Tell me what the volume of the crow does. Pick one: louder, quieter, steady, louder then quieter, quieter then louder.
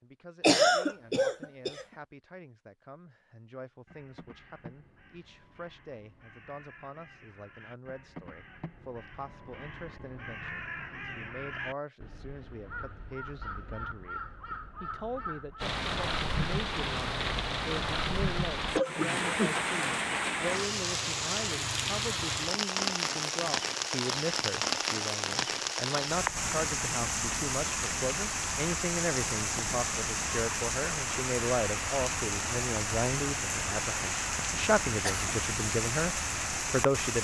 louder.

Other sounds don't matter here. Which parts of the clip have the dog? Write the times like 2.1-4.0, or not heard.
not heard.